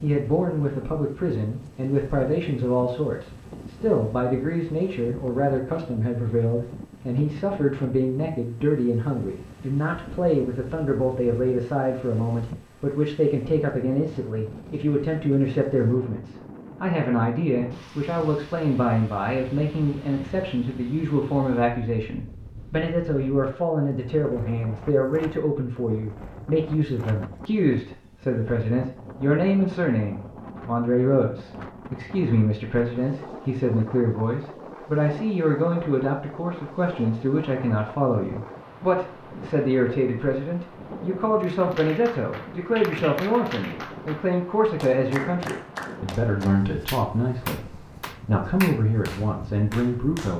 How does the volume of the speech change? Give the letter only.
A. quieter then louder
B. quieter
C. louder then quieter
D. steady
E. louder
D.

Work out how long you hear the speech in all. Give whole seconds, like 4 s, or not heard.
50 s.